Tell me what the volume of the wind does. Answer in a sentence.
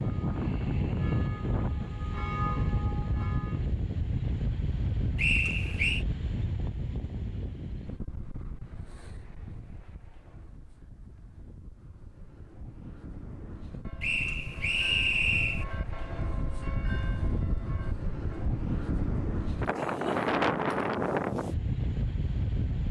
The loudness of the wind goes down, then up.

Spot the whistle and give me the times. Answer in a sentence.
The whistle can be heard from 5.2 to 6.0 s and from 14.0 to 15.7 s.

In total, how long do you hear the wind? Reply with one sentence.
You can hear the wind for 23 seconds altogether.